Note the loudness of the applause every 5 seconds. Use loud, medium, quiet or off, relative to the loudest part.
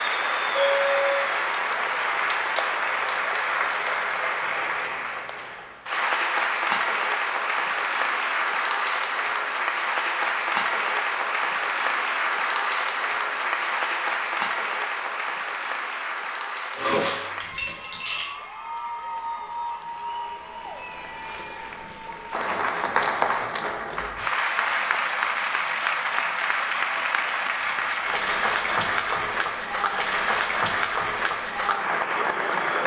loud, loud, loud, medium, loud, loud, loud.